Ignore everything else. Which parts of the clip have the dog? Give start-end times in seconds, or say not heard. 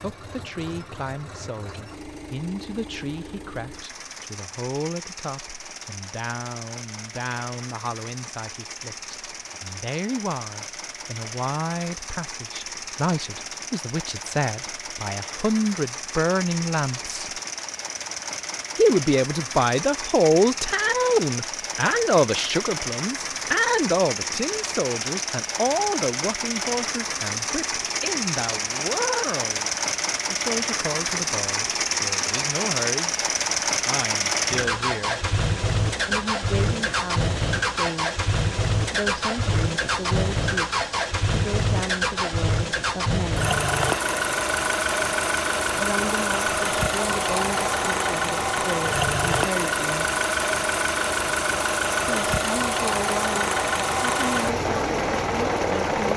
not heard.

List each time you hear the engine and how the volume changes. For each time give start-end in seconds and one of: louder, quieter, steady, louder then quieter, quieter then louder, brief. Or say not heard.
0.0-56.1 louder.